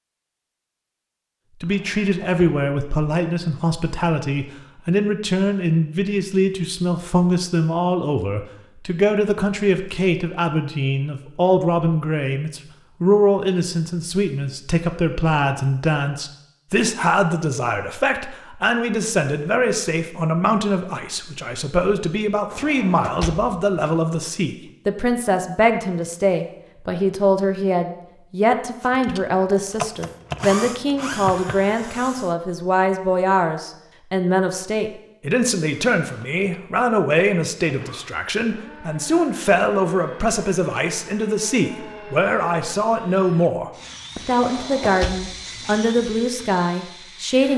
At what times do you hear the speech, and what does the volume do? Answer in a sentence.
You can hear the speech from 1.6 to 47.5 s, at a steady volume.